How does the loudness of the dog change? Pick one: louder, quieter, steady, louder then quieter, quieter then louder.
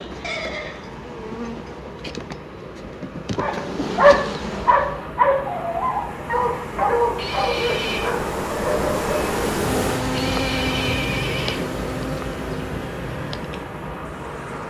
quieter.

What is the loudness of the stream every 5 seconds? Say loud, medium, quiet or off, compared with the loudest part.
medium, loud, loud.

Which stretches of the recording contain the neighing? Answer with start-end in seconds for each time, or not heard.
0.2-1.7, 7.2-8.2, 10.1-11.8.